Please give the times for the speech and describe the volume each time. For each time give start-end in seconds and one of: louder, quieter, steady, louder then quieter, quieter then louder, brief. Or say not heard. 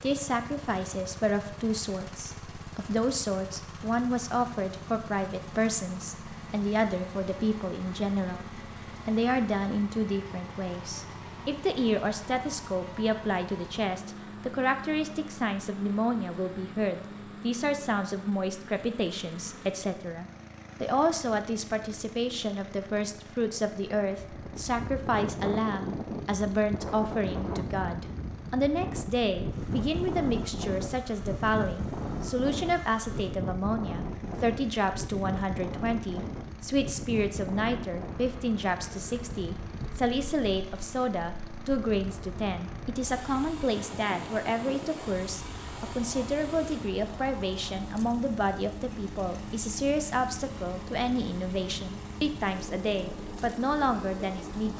0.0-54.7 steady.